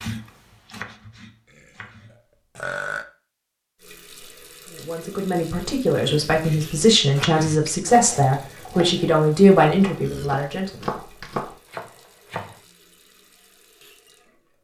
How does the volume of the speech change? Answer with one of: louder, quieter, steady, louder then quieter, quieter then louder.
louder.